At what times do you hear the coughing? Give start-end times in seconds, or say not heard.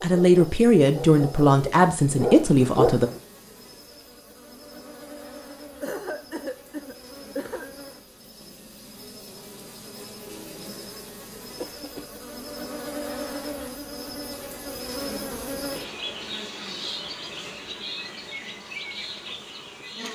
5.8-7.7, 11.6-12.2.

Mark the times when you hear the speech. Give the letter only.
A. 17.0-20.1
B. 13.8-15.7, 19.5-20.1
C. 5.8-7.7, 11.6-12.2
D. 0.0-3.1
D.